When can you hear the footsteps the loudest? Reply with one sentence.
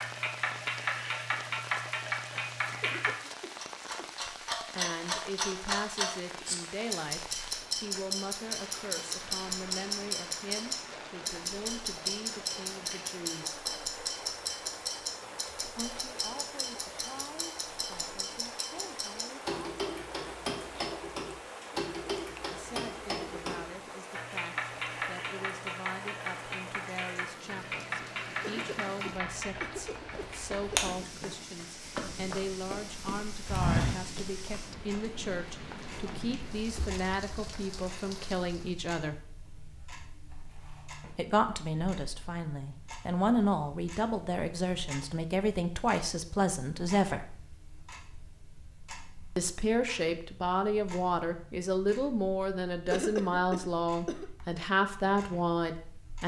The volume of the footsteps peaks at 34 seconds.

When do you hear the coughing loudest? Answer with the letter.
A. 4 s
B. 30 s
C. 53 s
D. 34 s
C.